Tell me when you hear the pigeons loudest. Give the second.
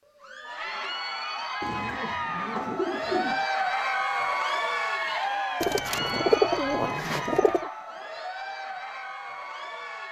6 s.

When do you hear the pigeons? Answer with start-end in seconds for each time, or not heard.
1.6-3.5, 5.6-7.7.